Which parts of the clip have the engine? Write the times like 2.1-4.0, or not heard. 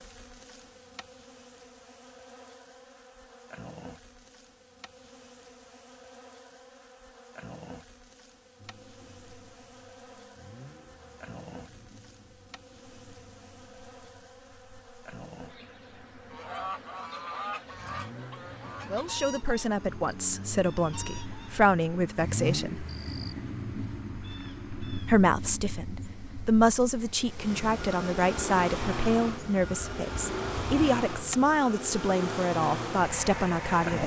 8.6-34.0.